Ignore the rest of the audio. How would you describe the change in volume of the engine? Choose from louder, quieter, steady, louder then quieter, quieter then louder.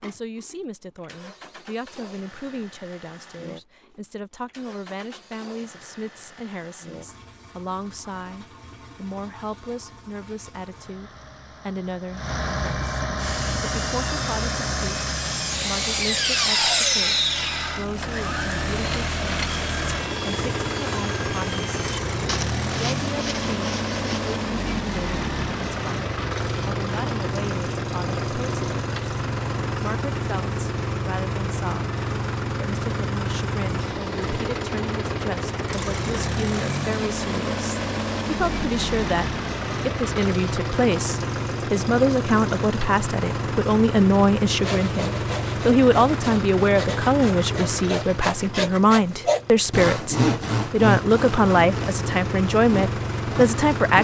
louder.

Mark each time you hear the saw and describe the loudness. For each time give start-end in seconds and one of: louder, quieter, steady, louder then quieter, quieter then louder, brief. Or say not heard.
13.2-24.4 louder then quieter
44.5-53.9 louder then quieter.